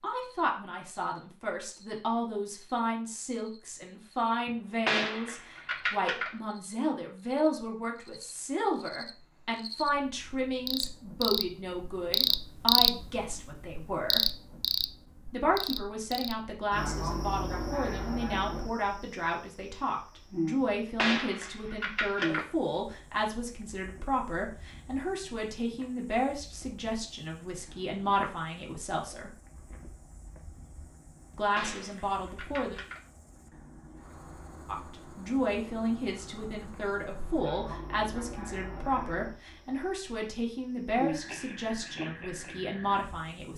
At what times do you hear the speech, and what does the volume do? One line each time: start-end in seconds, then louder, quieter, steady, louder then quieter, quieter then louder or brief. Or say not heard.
0.0-14.2 steady
15.3-29.4 steady
31.3-32.8 brief
34.6-43.5 steady.